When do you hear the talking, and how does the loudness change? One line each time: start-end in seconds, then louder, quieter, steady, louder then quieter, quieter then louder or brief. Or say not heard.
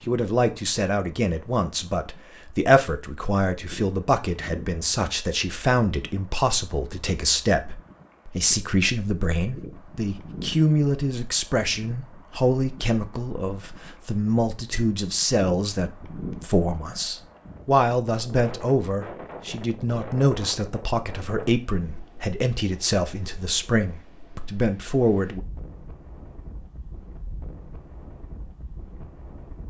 0.1-25.4 steady.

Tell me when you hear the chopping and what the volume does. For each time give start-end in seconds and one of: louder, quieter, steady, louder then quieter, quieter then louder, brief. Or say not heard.
not heard.